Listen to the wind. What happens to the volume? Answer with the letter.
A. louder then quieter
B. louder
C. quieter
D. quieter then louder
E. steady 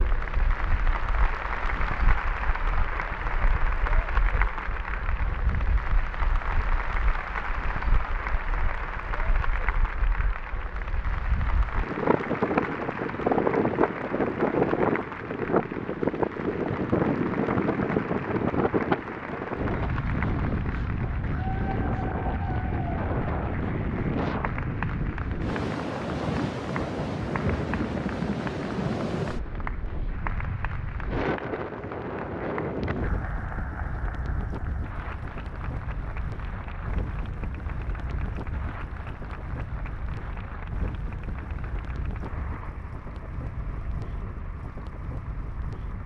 A.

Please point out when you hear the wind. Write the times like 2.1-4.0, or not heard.
0.0-46.0.